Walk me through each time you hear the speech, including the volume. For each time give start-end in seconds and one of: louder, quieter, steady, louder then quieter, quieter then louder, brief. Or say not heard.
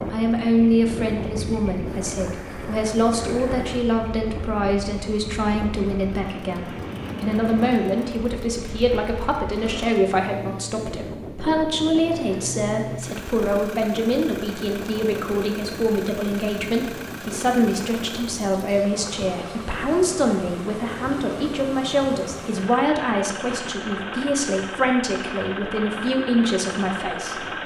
0.0-27.5 steady.